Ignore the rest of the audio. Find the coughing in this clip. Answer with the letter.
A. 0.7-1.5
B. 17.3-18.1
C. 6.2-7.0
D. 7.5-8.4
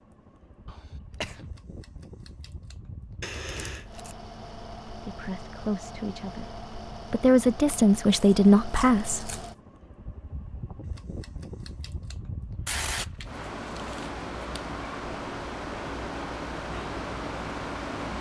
A.